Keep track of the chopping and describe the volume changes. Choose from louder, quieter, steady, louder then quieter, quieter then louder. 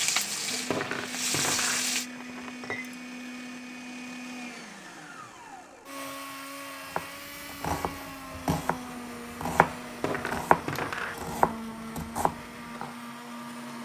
louder then quieter.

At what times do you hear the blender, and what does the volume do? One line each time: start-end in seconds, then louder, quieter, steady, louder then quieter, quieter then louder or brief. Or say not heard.
0.0-13.8 steady.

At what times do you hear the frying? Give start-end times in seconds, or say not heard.
0.0-2.1.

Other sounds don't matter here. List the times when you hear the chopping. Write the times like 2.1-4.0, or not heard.
6.9-12.9.